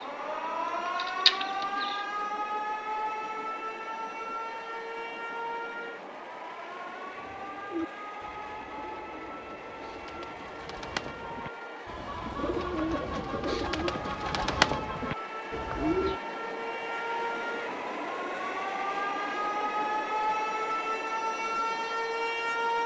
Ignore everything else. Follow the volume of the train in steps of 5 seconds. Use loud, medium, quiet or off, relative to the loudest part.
medium, medium, medium, loud, loud.